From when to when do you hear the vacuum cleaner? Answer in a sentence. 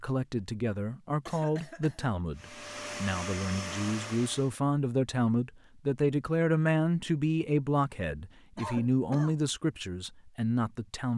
You can hear the vacuum cleaner from 2.4 to 4.5 s.